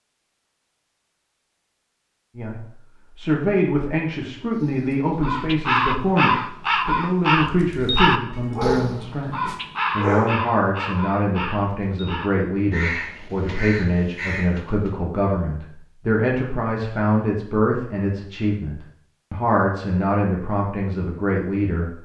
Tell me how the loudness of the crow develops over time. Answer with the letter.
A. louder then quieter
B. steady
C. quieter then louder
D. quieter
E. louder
D.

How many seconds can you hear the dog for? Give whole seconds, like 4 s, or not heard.
2 s.